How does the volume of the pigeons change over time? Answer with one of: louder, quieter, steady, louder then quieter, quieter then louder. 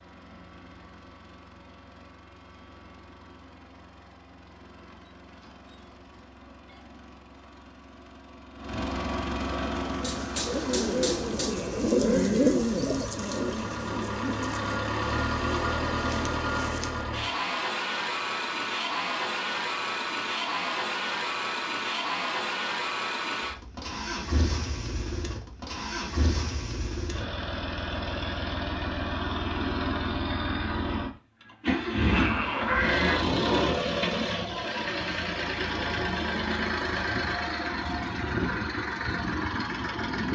louder then quieter.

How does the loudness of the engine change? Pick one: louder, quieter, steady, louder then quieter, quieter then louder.
louder.